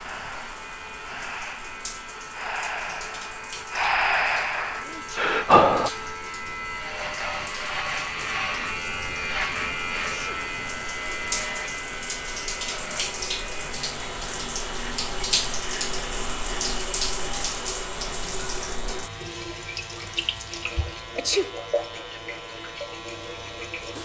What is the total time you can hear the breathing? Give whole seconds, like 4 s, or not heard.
6 s.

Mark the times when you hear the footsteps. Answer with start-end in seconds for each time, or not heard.
not heard.